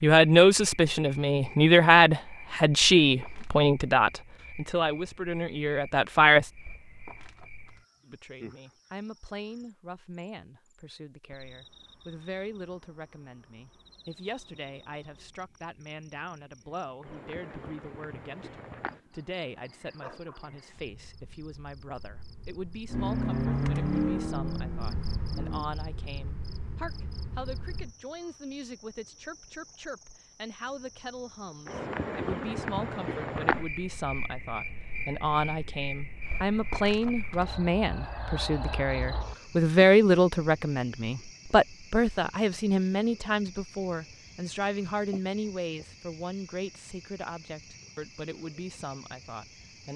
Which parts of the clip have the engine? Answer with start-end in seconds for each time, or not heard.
22.9-25.7.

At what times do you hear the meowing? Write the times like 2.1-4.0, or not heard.
not heard.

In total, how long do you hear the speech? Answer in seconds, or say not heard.
48 s.